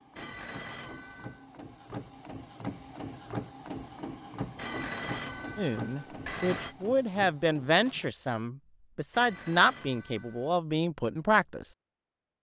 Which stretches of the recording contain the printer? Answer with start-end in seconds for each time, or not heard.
0.0-8.1.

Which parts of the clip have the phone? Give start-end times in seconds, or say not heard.
0.1-1.4, 4.5-6.8, 9.1-10.6.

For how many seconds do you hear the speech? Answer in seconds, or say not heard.
6 s.